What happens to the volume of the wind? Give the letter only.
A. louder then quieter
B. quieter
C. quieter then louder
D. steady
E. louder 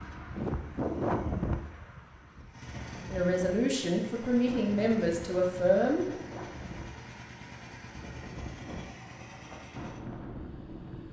B.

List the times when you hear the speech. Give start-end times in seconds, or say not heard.
3.1-6.0.